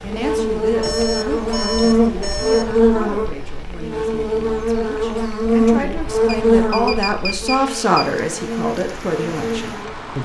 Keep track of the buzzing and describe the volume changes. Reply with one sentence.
The volume of the buzzing goes down.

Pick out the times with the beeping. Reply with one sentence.
You can hear the beeping from 0.8 to 2.8 s and from 6.2 to 8.1 s.